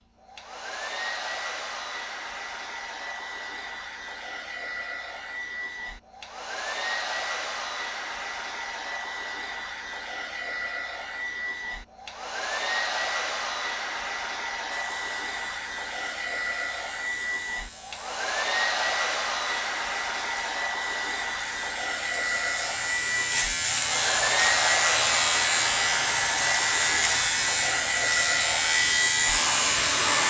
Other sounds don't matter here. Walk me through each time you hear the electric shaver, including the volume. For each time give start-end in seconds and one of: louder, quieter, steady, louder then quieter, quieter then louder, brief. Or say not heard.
14.7-30.2 louder.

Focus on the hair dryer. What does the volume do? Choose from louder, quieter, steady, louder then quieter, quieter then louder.
louder.